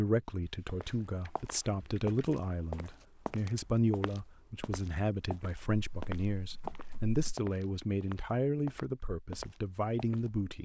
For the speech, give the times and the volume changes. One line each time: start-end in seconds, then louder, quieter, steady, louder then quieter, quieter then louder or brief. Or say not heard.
0.0-10.6 steady.